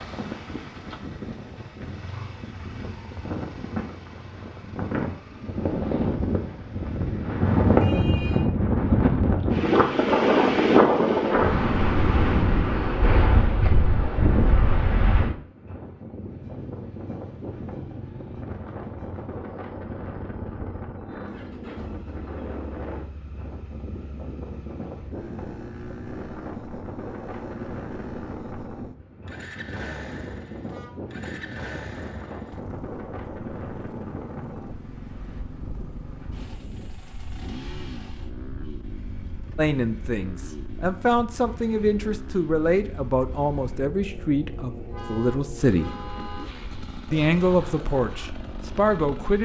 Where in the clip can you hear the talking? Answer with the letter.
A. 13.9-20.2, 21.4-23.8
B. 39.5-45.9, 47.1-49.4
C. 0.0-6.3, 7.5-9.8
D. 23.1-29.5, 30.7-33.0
B.